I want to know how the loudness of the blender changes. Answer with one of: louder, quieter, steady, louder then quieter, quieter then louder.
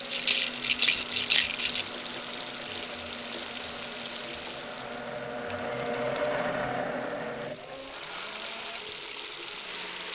louder then quieter.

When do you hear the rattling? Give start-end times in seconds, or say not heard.
0.1-1.9, 5.5-6.4.